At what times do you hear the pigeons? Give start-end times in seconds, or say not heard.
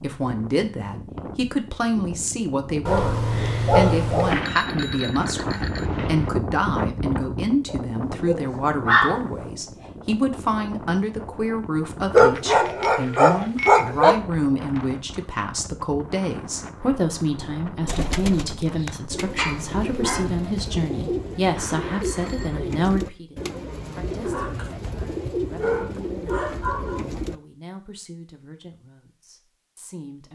17.9-27.4.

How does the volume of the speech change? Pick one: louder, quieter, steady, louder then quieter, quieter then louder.
quieter.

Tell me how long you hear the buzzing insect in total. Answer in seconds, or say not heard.
not heard.